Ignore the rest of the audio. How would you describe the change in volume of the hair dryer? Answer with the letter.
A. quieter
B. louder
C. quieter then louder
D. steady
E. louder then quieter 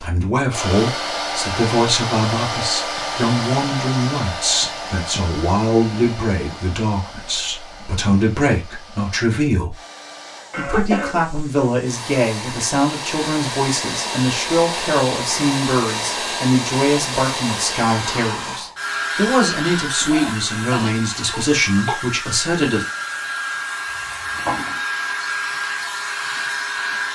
C.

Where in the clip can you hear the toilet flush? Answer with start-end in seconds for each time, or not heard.
23.9-24.8.